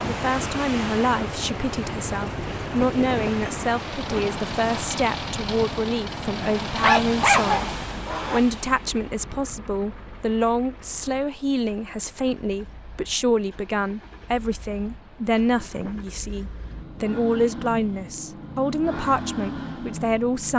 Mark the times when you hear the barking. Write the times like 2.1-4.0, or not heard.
6.8-8.4.